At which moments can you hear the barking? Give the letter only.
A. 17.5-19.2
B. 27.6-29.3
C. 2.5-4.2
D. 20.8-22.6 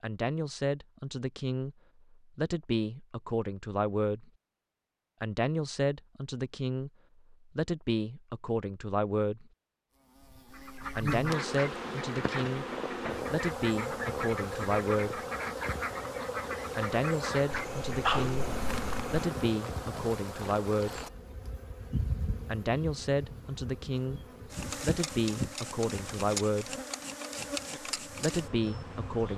A.